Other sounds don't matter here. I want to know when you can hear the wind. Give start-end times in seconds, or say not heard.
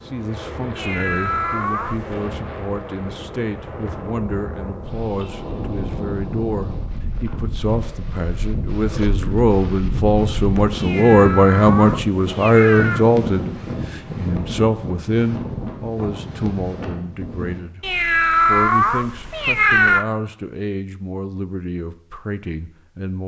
0.0-17.6.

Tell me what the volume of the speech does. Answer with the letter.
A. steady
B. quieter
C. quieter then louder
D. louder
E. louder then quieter
E.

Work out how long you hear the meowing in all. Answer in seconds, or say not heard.
6 s.